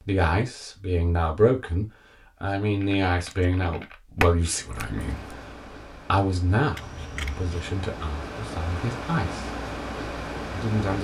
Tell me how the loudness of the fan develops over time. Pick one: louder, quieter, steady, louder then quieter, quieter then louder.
louder.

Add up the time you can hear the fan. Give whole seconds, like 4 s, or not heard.
6 s.